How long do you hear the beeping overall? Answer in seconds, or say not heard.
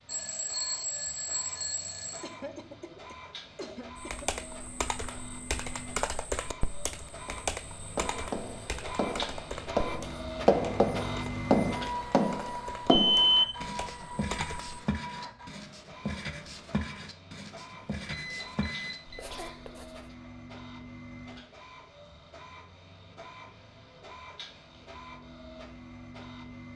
4 s.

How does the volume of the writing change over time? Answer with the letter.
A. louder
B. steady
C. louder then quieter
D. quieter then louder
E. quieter
C.